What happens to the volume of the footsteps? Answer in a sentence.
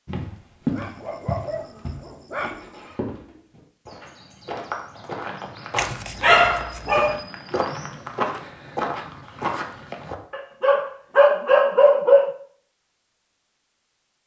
The loudness of the footsteps goes down, then up.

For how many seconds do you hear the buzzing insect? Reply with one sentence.
You can't hear the buzzing insect here.